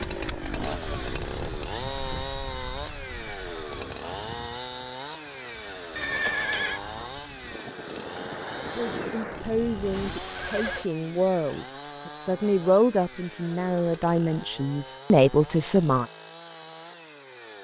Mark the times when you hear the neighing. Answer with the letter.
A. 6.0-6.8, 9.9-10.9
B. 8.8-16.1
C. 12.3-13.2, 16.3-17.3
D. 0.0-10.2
A.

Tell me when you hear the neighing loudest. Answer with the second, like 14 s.
6 s.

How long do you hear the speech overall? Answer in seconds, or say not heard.
7 s.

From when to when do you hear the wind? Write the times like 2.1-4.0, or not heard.
0.0-10.2.